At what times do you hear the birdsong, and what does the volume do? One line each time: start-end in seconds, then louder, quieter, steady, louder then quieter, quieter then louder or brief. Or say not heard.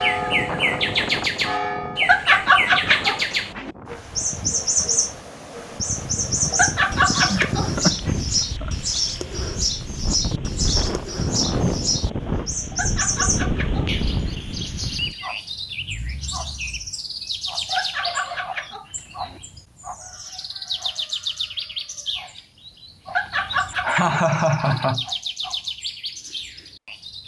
0.0-27.2 quieter.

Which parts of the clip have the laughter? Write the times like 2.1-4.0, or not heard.
7.1-8.7, 23.1-25.1.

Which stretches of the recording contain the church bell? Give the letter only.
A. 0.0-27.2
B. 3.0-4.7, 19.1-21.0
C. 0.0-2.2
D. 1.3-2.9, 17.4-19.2
C.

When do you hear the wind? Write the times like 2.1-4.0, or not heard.
0.0-15.2.